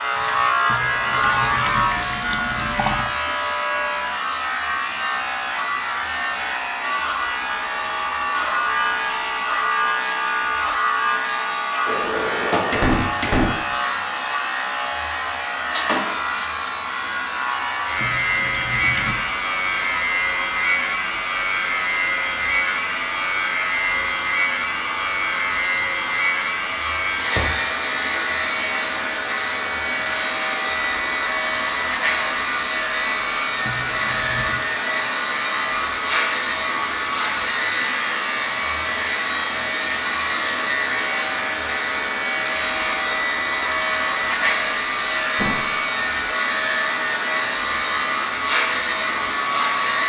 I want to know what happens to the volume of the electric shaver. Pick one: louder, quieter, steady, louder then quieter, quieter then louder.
steady.